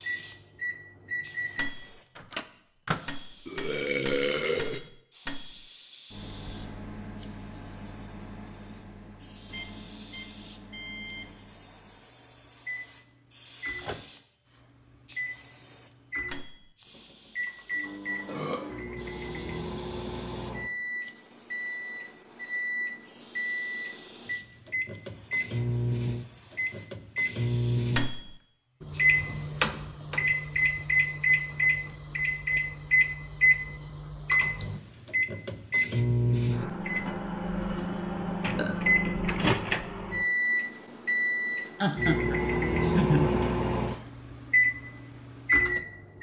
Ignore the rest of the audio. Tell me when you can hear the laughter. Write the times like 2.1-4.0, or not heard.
41.8-43.4.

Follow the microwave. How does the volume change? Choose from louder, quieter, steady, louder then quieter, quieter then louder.
louder.